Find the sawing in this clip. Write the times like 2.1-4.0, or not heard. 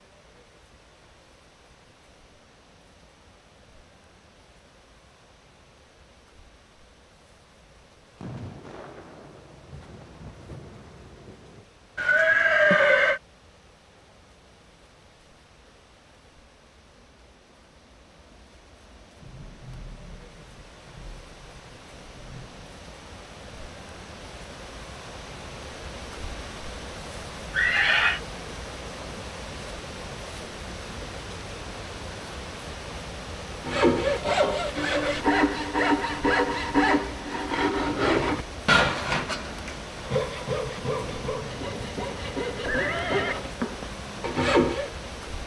33.6-44.9.